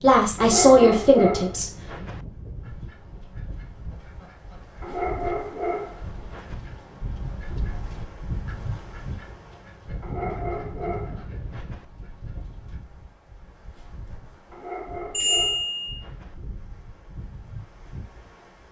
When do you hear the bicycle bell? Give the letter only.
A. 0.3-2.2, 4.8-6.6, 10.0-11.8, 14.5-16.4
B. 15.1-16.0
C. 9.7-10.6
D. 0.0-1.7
B.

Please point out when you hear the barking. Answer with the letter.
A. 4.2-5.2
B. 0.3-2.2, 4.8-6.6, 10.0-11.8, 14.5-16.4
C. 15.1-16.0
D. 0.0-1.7
B.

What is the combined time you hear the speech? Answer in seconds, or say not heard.
2 s.